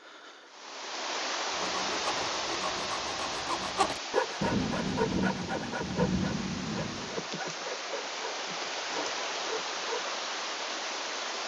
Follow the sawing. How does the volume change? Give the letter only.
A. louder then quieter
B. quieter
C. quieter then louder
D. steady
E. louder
A.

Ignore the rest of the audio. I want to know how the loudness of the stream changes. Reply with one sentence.
The volume of the stream goes down, then up.